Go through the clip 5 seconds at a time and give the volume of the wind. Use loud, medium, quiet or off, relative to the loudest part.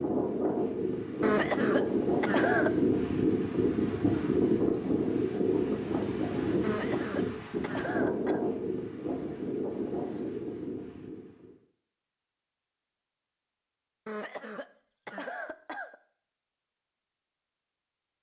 loud, loud, medium, off.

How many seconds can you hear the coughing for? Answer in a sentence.
The coughing can be heard for 5 seconds in total.